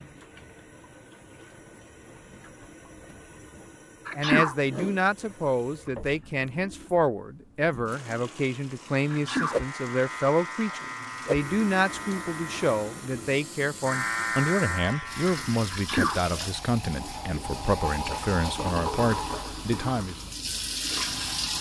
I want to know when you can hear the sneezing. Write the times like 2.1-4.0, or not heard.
4.0-4.5, 9.1-9.6, 15.7-16.2.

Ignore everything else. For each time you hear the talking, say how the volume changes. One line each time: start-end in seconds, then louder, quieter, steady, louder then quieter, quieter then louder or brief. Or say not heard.
4.2-20.3 steady.